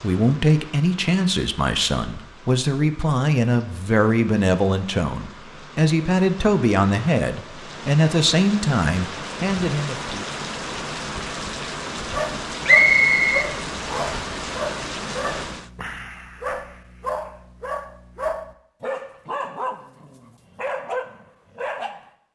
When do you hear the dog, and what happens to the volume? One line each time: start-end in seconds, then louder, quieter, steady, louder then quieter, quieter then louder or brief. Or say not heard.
12.1-22.0 steady.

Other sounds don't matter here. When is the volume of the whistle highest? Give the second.
13 s.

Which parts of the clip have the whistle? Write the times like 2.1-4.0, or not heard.
12.7-14.2.